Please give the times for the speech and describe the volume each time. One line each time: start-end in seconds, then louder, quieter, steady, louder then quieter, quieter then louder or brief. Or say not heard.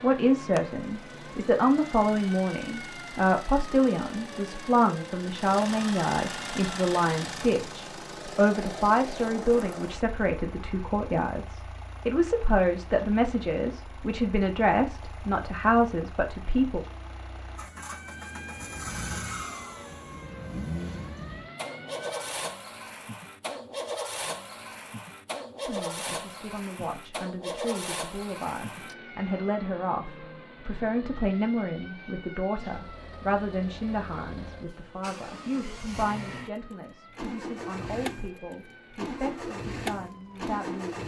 0.0-16.9 steady
25.6-41.0 louder then quieter.